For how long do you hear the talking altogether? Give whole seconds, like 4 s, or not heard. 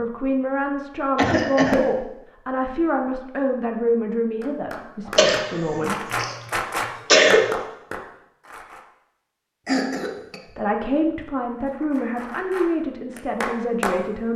10 s.